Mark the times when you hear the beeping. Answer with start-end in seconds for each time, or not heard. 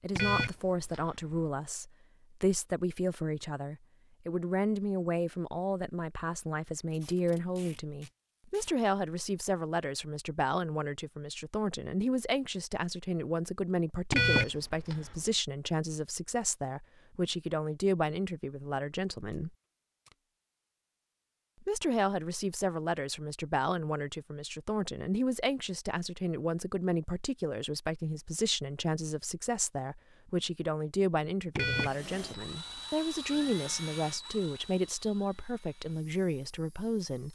0.1-1.4, 14.1-15.3, 31.6-32.8.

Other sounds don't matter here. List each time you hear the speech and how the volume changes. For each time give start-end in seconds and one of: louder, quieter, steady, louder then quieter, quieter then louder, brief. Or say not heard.
0.0-19.5 steady
21.6-37.3 steady.